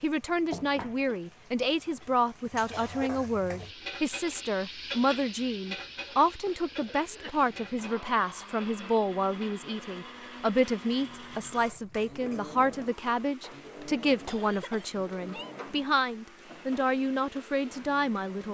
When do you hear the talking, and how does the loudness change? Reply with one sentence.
You can hear the talking from 0.0 to 18.4 s, at a steady volume.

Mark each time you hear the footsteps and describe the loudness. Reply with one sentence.
The footsteps can't be heard in this clip.